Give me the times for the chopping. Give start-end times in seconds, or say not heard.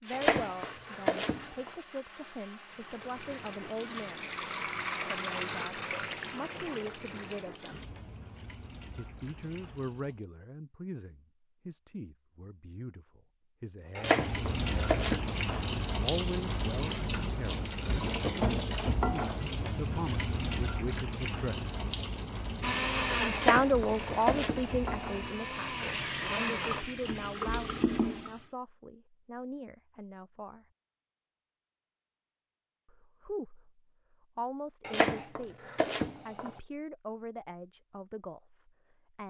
0.1-1.7, 13.9-15.6, 23.3-25.0, 34.9-36.5.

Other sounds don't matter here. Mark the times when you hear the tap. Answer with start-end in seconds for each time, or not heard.
2.6-10.2, 14.1-28.4.